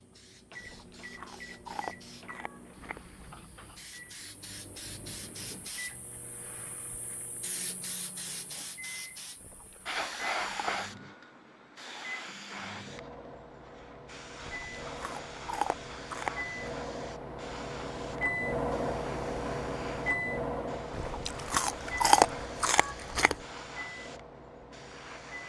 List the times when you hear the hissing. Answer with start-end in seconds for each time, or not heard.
0.0-25.4.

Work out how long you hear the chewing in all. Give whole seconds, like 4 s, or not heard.
9 s.